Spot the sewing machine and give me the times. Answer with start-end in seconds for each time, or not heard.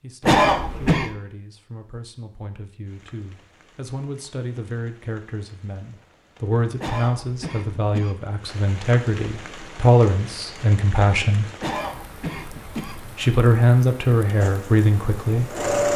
14.4-15.9.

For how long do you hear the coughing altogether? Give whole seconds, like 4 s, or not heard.
4 s.